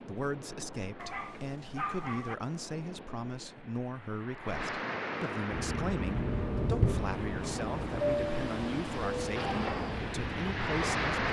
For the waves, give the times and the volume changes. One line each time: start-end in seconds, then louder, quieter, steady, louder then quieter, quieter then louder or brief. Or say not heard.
0.0-11.2 louder.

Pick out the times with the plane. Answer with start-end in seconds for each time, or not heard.
5.5-11.2.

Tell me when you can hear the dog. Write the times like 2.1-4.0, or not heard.
0.9-2.4.